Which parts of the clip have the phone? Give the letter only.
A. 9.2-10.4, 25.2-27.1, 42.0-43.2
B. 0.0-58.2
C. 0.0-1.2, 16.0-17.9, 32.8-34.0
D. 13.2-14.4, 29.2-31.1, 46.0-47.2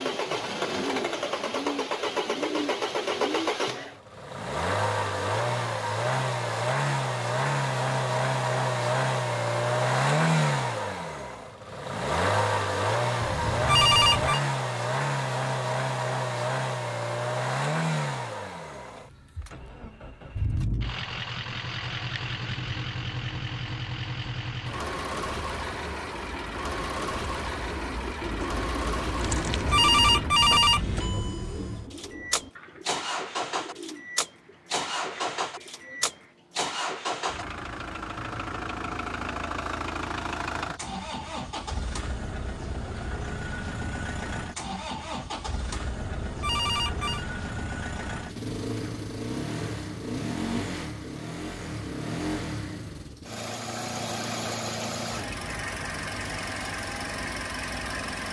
D.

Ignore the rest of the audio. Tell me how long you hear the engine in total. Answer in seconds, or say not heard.
58 s.